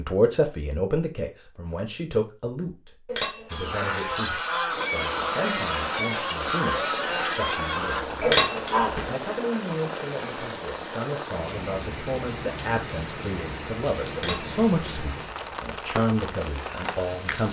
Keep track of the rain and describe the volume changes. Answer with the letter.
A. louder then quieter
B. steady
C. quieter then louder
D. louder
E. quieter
B.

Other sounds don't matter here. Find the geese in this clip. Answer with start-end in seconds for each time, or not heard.
3.5-9.0.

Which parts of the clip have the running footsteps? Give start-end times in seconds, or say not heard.
not heard.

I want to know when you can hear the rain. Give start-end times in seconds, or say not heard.
4.7-17.4.